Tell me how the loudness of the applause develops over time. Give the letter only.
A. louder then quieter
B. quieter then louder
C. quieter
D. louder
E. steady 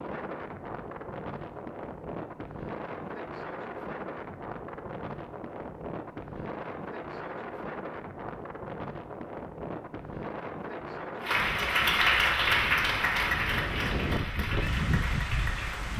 C.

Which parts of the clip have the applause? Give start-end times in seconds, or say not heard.
11.2-15.9.